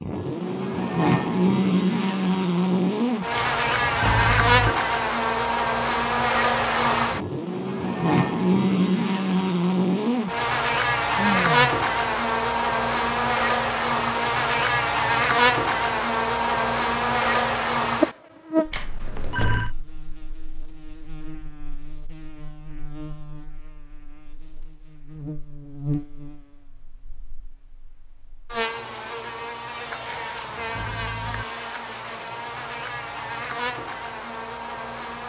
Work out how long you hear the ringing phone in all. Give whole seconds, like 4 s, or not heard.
4 s.